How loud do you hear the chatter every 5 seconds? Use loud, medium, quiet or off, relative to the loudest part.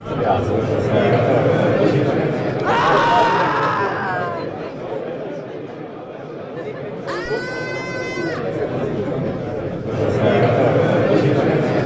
loud, medium, loud.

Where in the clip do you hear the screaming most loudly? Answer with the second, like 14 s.
3 s.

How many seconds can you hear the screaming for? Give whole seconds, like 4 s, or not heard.
3 s.